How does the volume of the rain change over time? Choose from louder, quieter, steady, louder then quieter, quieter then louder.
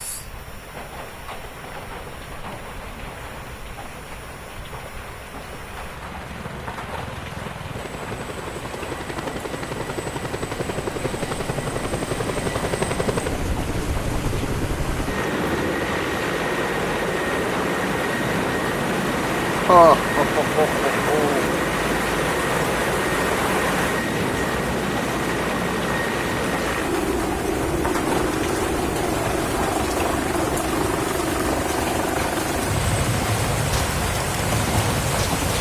louder.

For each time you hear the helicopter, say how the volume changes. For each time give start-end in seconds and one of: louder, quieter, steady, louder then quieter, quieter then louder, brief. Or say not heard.
0.0-35.5 louder.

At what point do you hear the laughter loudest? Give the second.
20 s.